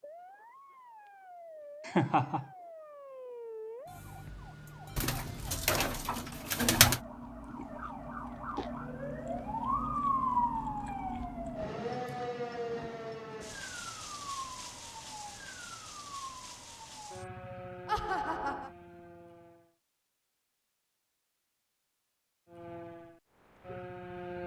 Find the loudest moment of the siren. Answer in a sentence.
The loudest moment of the siren is at 10 seconds.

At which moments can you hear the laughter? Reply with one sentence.
You can hear the laughter from 1.9 to 2.5 s and from 17.9 to 18.7 s.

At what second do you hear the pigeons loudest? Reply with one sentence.
The volume of the pigeons peaks at 7 seconds.